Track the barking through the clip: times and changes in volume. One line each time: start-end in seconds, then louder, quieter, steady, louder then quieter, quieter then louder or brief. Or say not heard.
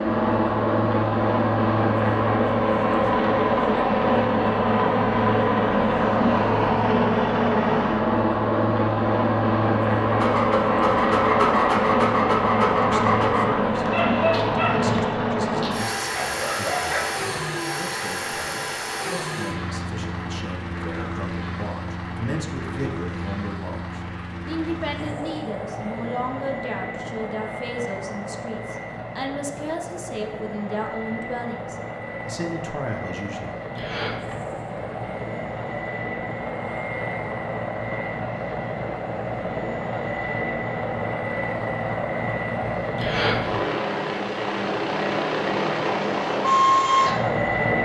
10.1-17.1 quieter.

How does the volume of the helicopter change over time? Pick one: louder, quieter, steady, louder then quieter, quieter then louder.
quieter then louder.